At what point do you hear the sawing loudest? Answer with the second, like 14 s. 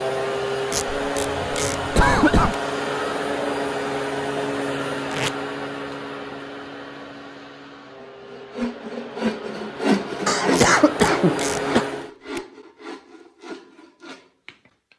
10 s.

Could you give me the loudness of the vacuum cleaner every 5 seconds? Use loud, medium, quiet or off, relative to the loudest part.
loud, medium, loud.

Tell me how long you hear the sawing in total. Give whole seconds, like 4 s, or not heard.
7 s.